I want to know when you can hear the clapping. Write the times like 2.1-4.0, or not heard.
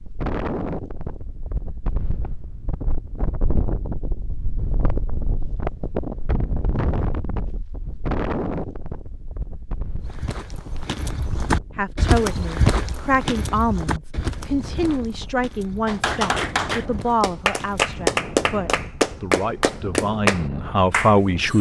15.8-21.5.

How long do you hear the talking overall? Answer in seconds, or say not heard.
10 s.